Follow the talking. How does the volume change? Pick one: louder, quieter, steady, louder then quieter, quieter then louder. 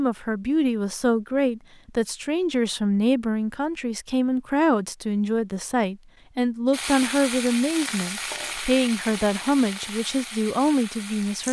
steady.